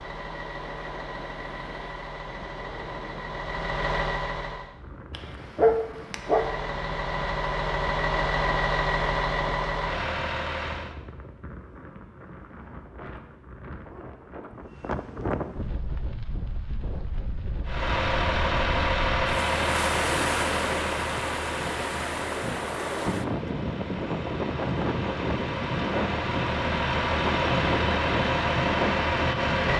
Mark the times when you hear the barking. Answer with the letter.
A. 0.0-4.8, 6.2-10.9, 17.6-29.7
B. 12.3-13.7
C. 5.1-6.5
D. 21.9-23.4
C.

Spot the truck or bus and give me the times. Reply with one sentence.
The truck or bus can be heard from 0.0 to 4.8 s, from 6.2 to 10.9 s and from 17.6 to 29.7 s.